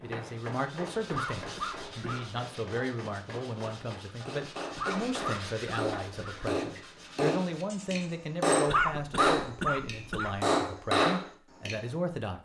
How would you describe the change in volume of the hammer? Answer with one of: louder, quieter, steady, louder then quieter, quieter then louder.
louder.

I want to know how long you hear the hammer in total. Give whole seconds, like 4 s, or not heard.
12 s.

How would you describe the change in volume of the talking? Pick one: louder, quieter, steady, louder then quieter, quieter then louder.
steady.